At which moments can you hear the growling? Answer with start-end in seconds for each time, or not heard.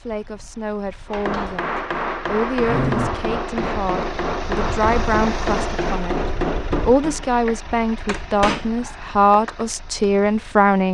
2.6-3.3.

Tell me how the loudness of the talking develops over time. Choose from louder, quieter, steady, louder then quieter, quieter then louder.
louder.